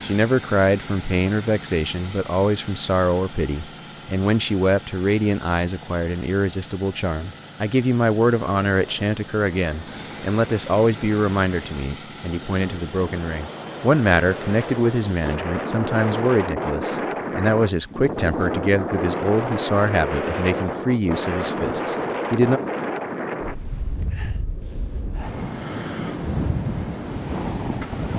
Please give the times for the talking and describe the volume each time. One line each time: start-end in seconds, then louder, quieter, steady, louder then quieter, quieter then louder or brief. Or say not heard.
0.0-22.6 steady.